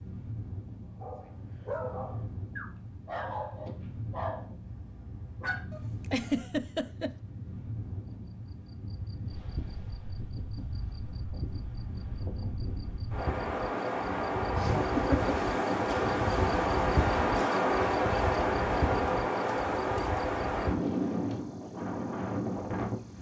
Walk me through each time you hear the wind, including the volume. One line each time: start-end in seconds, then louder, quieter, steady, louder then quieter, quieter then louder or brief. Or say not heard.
0.0-23.1 louder.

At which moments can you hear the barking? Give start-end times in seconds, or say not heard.
0.9-6.5.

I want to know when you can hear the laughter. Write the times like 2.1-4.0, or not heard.
6.1-7.1, 14.5-15.3.